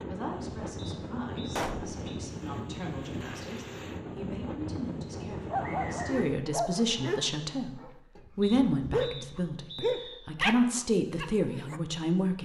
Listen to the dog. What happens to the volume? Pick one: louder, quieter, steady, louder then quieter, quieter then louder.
louder.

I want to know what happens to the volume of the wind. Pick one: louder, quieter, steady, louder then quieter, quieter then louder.
steady.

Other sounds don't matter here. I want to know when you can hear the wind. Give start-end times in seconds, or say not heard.
0.0-6.3.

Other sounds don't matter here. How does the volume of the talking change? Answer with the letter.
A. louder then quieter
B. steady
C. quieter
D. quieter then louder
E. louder
E.